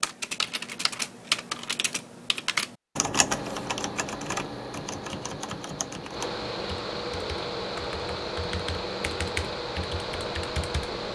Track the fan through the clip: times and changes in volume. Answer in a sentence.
The fan can be heard from 3.2 to 11.1 s, getting louder.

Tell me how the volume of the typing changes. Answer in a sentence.
The loudness of the typing goes down.